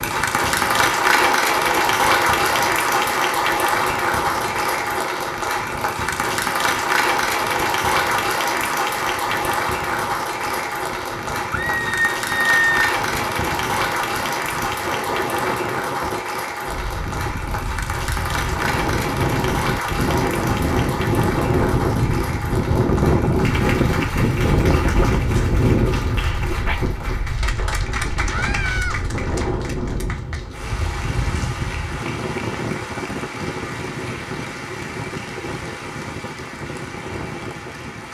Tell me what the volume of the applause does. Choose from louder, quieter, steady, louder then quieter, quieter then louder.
quieter.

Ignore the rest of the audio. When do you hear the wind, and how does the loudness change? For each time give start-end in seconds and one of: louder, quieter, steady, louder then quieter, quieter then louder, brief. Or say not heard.
0.0-38.0 louder then quieter.